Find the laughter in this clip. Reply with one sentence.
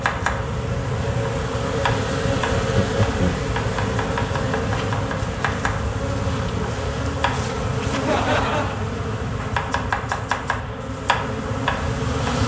The laughter can be heard from 2.5 to 3.5 s and from 7.9 to 8.8 s.